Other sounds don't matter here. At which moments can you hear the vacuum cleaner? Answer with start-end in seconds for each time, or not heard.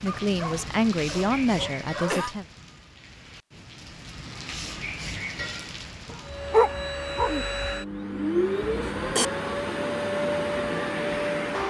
6.2-11.6.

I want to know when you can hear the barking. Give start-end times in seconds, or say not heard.
0.1-2.3, 6.1-7.5.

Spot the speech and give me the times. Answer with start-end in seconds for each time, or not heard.
0.0-2.5.